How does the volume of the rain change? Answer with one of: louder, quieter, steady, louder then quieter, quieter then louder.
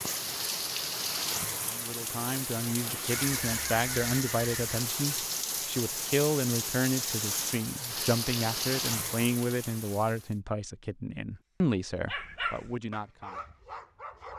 steady.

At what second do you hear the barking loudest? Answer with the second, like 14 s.
12 s.